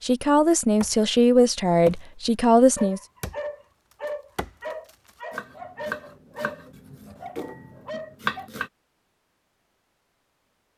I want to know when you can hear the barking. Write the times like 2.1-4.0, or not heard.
2.8-8.5.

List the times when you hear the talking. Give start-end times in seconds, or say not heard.
0.0-3.0.